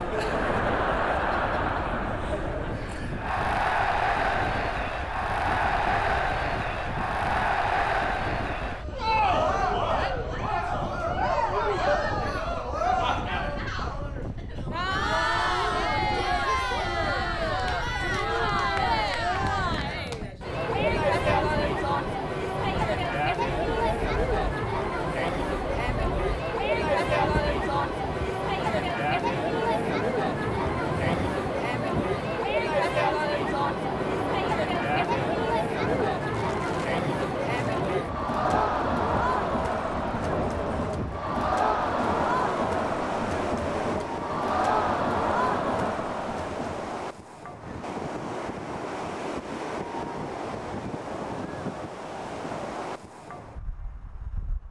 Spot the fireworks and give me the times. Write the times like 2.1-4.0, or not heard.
not heard.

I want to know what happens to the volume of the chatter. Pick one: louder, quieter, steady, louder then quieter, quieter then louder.
steady.